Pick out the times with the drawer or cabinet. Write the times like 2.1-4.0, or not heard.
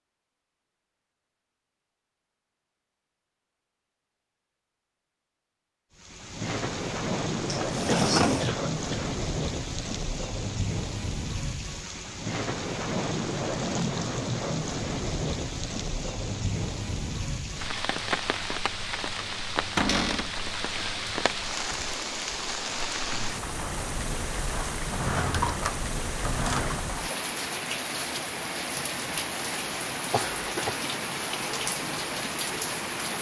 7.5-8.6, 19.8-20.4, 24.9-26.8.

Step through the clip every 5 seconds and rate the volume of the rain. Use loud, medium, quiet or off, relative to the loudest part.
off, loud, loud, loud, loud, loud, loud.